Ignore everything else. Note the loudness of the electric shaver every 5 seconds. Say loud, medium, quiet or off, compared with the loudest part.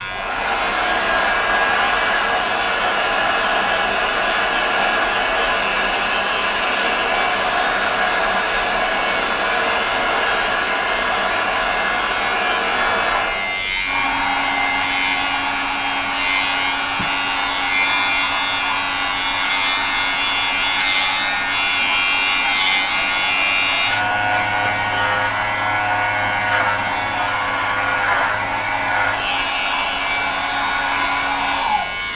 medium, medium, medium, loud, loud, loud, medium.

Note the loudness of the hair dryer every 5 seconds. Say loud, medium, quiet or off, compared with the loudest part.
loud, loud, loud, medium, medium, medium, loud.